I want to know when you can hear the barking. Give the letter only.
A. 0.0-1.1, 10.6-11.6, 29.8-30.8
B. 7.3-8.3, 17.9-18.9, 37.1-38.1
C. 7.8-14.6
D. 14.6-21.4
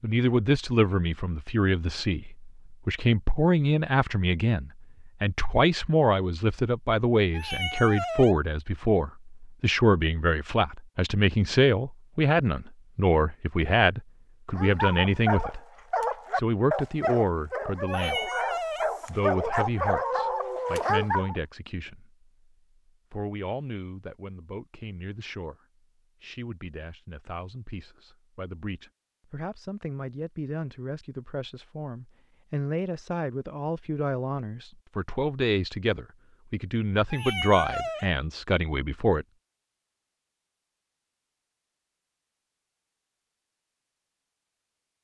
D.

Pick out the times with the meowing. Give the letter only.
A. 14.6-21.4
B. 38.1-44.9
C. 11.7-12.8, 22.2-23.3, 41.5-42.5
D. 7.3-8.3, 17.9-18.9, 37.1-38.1
D.